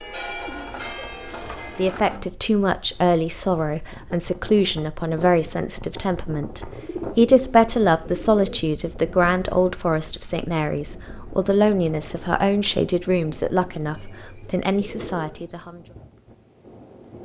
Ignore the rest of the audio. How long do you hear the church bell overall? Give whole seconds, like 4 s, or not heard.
2 s.